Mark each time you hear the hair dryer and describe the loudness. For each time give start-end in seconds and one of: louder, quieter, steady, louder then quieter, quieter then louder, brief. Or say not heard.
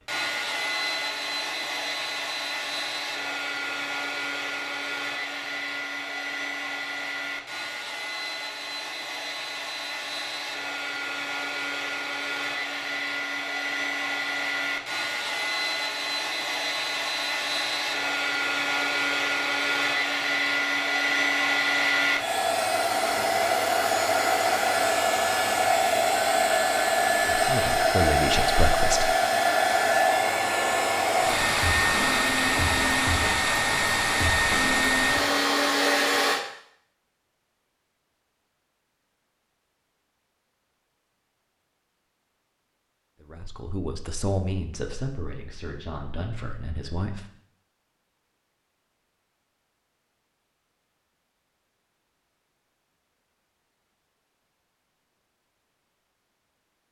0.1-36.4 louder.